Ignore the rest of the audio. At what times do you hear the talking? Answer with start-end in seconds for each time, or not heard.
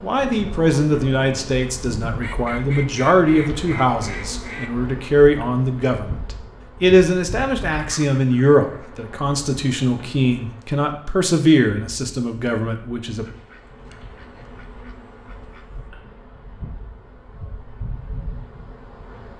0.0-6.2, 6.8-13.2.